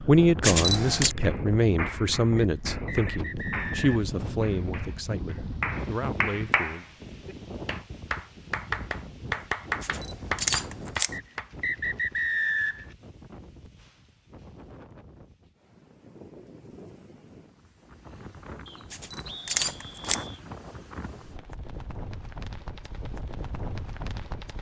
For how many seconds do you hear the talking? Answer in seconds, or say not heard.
7 s.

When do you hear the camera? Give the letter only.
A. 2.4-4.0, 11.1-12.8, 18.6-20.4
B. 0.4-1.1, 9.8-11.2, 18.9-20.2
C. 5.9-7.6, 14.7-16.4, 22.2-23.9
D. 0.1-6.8
B.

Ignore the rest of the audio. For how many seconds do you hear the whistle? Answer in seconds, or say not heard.
5 s.